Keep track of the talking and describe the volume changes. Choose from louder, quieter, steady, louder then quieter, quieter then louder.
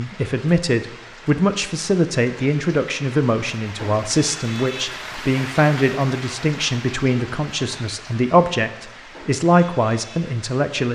steady.